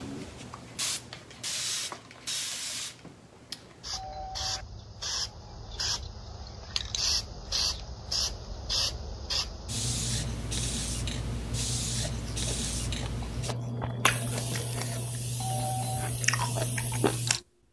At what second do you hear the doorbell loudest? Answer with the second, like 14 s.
16 s.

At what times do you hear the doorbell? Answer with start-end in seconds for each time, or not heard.
3.0-4.7, 14.5-16.1.